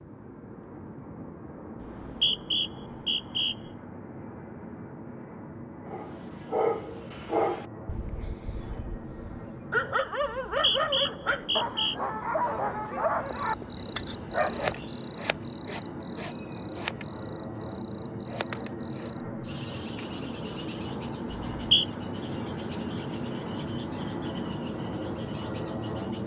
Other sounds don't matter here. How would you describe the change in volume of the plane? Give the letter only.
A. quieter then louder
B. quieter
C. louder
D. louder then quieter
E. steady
C.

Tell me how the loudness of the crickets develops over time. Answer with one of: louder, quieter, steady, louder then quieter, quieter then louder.
quieter.